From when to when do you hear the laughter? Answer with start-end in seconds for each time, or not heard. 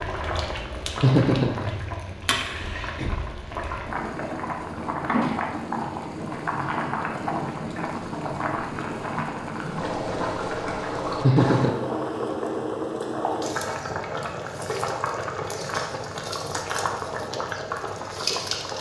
1.0-2.1, 11.2-11.9.